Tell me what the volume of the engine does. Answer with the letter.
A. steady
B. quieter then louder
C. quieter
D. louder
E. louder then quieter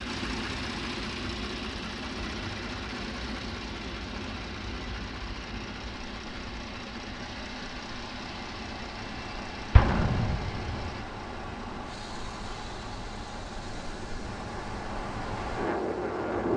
C.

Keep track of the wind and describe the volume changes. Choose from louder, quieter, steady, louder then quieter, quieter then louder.
louder.